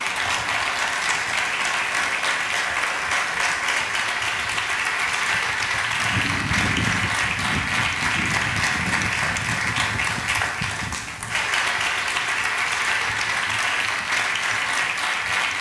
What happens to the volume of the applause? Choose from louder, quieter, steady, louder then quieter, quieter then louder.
steady.